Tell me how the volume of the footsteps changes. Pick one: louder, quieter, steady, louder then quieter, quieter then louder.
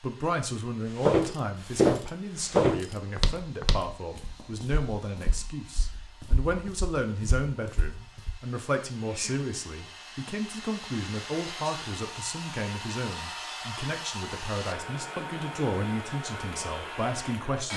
quieter then louder.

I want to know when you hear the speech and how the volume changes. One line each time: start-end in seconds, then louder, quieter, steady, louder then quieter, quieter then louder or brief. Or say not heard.
0.0-17.7 steady.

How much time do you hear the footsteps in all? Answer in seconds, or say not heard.
7 s.